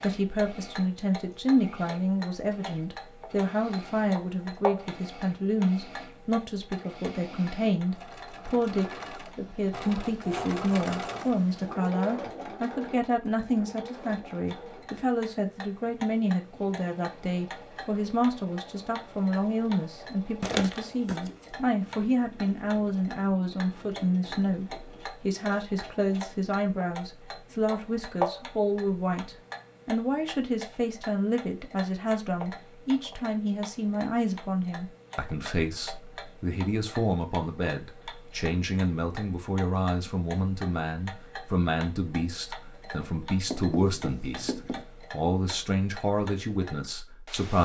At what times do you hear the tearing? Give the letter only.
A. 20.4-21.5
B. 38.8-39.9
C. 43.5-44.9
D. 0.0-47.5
A.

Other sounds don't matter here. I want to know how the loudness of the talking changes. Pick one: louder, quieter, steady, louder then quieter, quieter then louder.
steady.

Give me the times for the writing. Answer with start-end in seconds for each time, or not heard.
43.5-44.9.